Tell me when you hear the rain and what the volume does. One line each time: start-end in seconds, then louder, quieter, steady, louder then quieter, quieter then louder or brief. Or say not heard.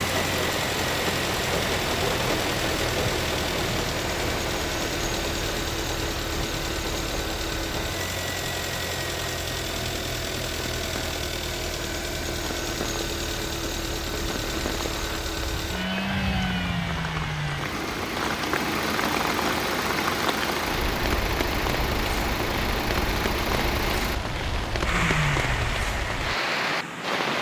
0.0-27.3 quieter then louder.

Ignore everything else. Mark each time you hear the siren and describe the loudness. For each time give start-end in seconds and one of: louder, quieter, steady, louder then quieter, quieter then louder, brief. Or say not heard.
not heard.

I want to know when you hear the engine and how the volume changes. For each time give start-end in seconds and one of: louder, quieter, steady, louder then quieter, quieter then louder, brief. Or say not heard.
0.0-27.3 steady.